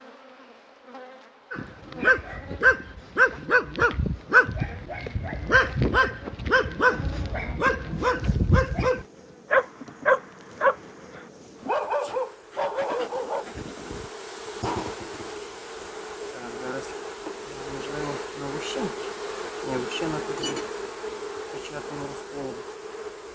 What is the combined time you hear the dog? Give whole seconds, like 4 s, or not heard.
12 s.